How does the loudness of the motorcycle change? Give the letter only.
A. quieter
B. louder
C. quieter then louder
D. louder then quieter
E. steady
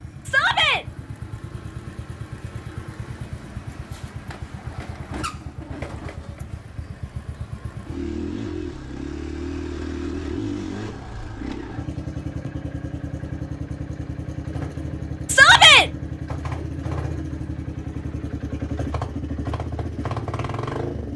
B.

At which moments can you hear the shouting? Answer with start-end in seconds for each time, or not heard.
0.2-0.8, 15.2-15.8.